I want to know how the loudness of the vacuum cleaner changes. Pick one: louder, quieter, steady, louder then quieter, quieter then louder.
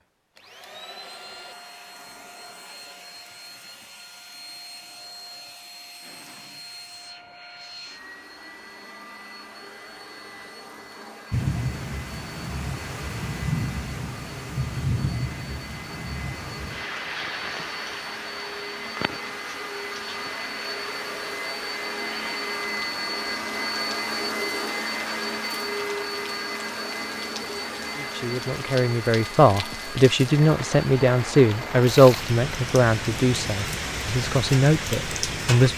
louder.